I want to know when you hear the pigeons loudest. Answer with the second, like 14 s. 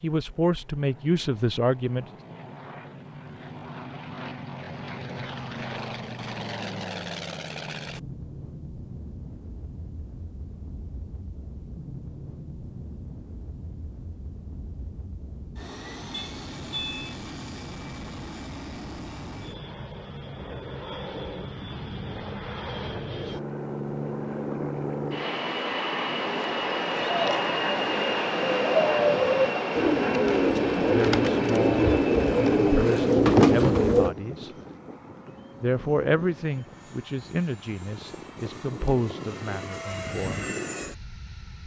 33 s.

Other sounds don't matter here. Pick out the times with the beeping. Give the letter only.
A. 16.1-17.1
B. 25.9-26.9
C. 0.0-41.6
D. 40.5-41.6
A.